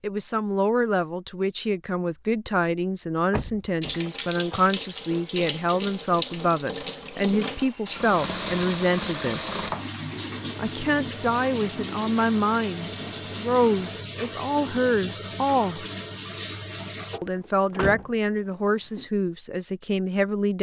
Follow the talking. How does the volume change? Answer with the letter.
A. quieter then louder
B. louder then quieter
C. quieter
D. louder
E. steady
E.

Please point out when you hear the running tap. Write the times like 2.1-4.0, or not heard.
3.8-17.2.